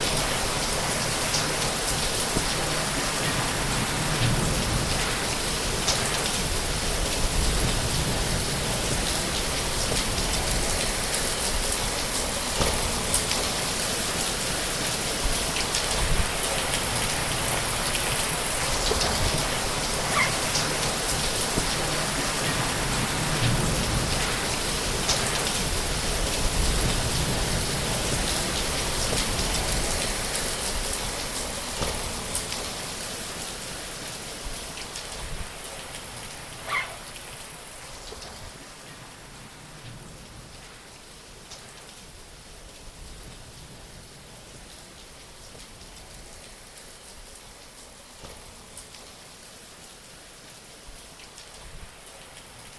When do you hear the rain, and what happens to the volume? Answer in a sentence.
You can hear the rain from 0.0 to 52.7 s, getting quieter.